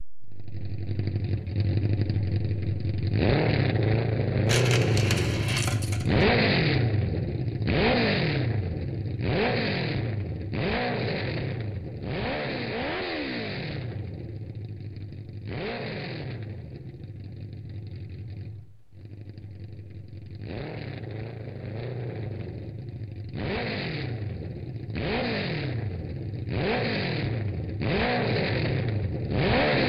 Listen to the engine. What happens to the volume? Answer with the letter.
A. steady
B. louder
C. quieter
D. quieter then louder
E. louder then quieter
D.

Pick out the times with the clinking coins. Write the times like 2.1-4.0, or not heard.
4.5-6.2.